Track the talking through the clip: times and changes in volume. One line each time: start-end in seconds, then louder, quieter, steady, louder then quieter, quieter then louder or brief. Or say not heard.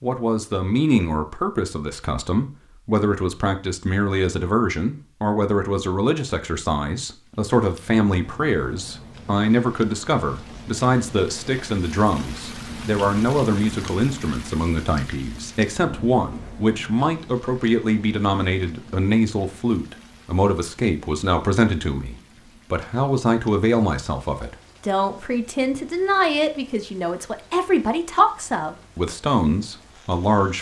0.0-30.5 steady.